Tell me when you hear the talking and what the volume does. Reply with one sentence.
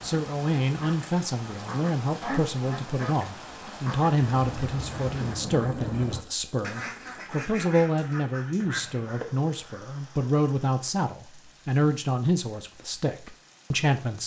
You can hear the talking from 0.0 to 14.2 s, at a steady volume.